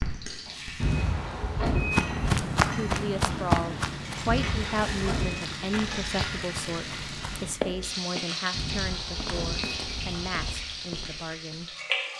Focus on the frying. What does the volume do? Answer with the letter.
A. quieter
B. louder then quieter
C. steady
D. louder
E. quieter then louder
D.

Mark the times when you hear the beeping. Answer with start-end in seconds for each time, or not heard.
0.8-2.4, 4.2-5.5, 8.5-10.6.